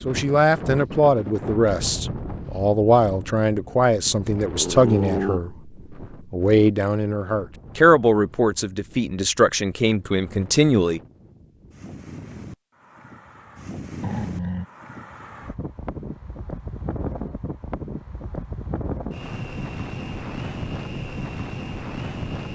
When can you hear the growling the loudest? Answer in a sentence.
The volume of the growling peaks at 5 seconds.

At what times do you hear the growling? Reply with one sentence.
You can hear the growling from 4.5 to 5.4 s and from 14.0 to 14.7 s.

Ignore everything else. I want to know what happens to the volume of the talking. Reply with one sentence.
The volume of the talking stays about the same.